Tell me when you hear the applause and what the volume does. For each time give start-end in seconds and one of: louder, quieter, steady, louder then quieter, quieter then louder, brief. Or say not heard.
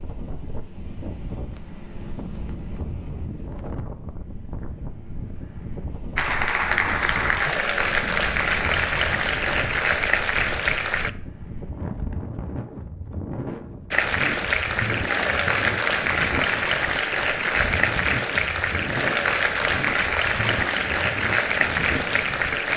6.2-11.1 steady
13.9-22.7 steady.